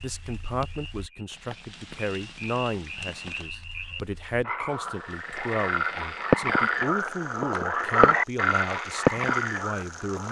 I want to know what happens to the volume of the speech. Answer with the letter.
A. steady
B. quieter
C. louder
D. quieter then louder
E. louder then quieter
A.